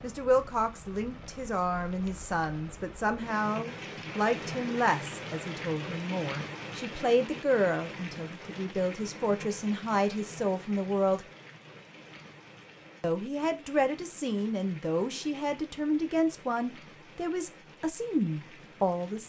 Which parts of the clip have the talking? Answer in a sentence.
You can hear the talking from 0.0 to 11.2 s and from 13.0 to 19.2 s.